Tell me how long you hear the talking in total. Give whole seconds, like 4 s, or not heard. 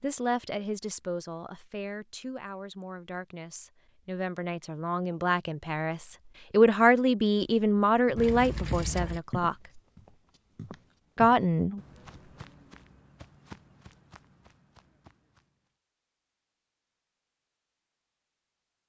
10 s.